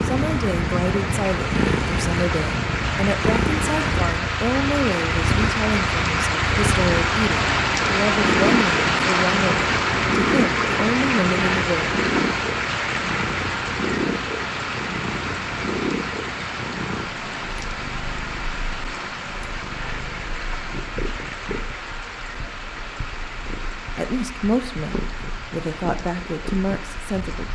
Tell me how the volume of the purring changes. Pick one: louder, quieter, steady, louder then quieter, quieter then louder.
quieter.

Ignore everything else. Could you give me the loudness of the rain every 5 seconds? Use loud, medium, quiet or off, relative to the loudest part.
medium, loud, loud, medium, quiet, quiet.